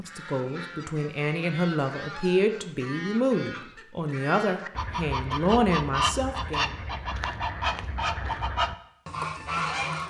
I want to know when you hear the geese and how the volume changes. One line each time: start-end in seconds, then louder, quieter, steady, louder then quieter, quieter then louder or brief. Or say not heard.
0.0-10.0 louder.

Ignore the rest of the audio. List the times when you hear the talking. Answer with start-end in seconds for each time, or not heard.
0.0-6.8.